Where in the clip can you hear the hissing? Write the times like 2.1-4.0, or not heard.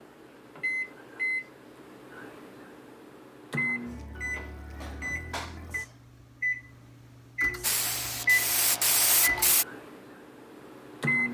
7.6-9.7.